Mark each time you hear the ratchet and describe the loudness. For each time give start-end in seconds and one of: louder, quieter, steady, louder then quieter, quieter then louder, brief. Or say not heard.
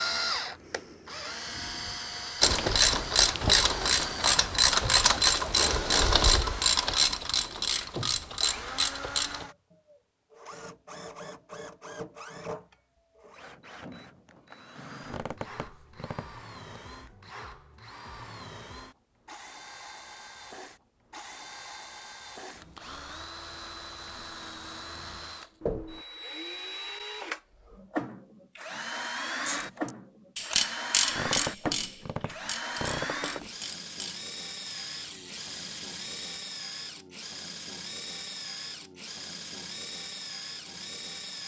2.4-9.4 quieter
29.3-36.4 quieter.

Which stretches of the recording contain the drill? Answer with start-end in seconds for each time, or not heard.
0.0-41.4.